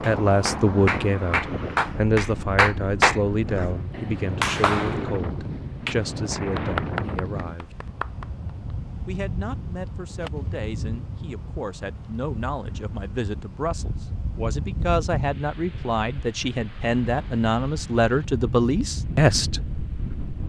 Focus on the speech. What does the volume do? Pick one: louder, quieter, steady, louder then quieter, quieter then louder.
quieter then louder.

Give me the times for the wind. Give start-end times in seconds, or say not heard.
0.0-20.4.